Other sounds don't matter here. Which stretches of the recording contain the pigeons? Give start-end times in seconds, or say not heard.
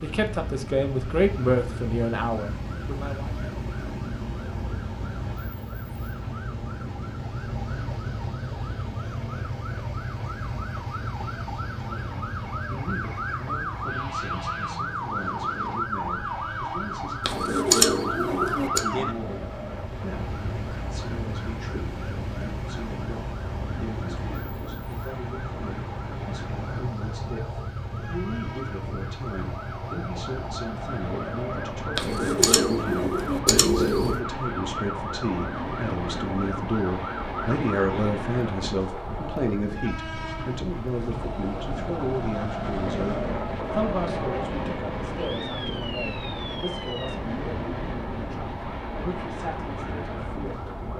17.2-18.9, 31.9-34.2.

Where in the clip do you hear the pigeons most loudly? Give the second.
18 s.